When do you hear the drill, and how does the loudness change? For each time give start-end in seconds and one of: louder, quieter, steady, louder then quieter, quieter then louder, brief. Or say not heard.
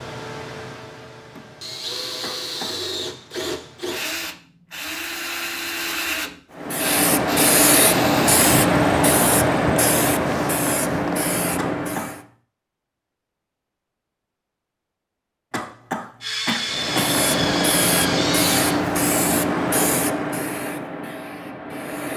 0.0-8.4 louder
16.2-18.9 brief.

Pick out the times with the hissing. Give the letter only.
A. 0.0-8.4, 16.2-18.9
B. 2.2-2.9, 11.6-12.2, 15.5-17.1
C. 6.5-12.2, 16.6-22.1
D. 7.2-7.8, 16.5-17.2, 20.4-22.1
C.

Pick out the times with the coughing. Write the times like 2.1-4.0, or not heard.
2.2-2.9, 11.6-12.2, 15.5-17.1.